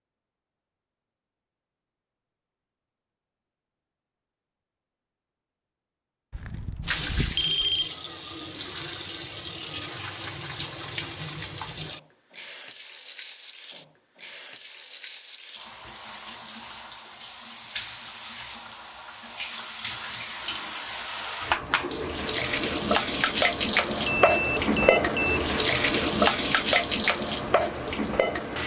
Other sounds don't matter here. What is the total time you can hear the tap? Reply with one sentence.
You can hear the tap for 22 seconds altogether.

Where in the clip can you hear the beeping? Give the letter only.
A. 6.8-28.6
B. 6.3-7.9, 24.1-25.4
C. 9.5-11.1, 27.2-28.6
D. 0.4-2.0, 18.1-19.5
B.